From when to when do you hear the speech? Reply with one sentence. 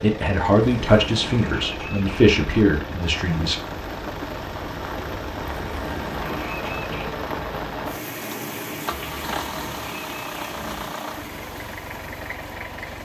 The speech can be heard from 0.0 to 3.5 s.